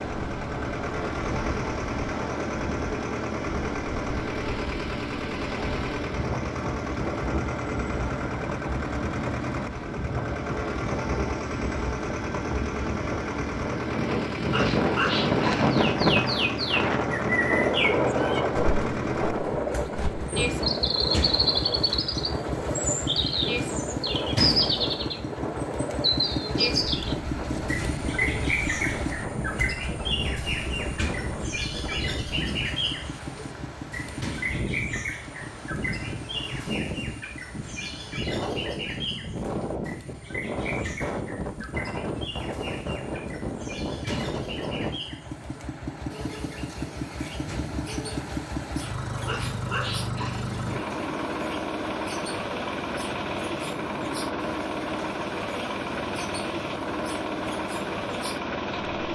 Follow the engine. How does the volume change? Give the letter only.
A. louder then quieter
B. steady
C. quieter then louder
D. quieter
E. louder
C.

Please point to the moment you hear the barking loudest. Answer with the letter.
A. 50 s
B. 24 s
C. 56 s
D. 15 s
D.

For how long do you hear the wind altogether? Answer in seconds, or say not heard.
45 s.